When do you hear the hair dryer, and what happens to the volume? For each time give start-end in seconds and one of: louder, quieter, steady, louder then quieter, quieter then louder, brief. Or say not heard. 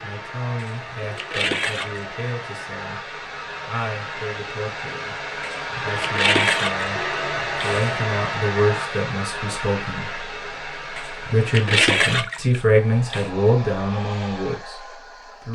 0.0-15.5 louder then quieter.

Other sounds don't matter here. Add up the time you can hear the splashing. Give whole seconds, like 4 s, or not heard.
6 s.